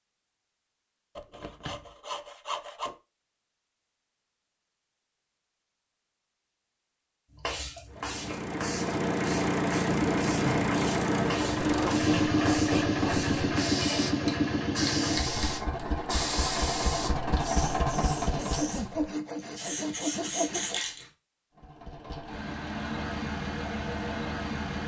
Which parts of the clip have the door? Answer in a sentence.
The door can be heard from 1.3 to 1.9 s.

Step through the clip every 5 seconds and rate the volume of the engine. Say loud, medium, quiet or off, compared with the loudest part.
off, loud, loud, medium, medium.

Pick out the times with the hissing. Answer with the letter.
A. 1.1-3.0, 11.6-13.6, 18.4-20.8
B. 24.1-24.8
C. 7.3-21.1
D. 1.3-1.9
C.